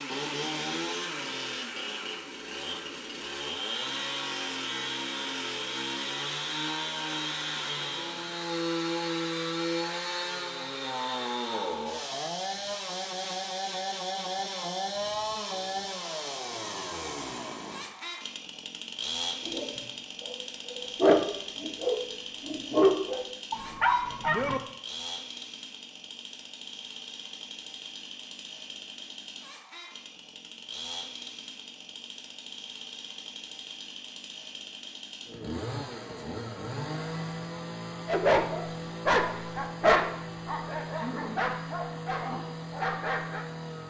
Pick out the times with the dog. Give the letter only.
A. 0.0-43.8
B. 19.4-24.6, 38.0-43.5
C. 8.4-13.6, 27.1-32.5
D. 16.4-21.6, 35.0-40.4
B.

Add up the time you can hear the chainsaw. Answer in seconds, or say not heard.
44 s.